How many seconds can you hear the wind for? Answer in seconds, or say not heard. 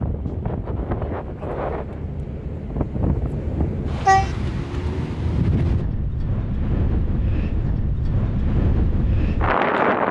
10 s.